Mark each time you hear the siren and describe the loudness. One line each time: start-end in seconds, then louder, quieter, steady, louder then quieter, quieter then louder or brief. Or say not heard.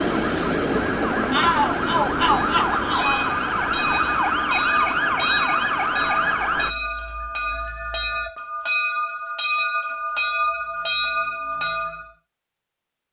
0.0-6.8 steady.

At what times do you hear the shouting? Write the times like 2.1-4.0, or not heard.
1.3-3.3.